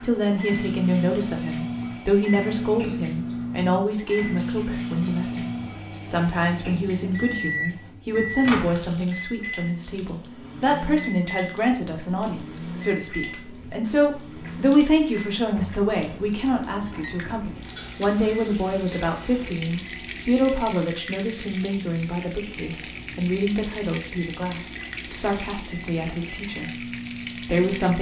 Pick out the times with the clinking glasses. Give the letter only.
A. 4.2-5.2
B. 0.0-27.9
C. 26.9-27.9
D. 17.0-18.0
D.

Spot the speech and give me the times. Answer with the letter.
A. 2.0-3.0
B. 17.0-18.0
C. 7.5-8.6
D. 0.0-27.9
D.